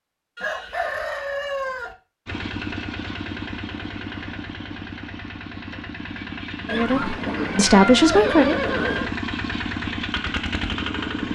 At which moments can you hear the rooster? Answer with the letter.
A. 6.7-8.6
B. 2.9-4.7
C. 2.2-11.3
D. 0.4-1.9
D.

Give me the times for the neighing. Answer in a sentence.
The neighing can be heard from 0.3 to 1.1 s and from 6.7 to 9.1 s.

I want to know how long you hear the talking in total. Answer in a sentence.
You can hear the talking for 2 seconds altogether.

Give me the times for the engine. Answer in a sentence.
You can hear the engine from 2.2 to 11.3 s.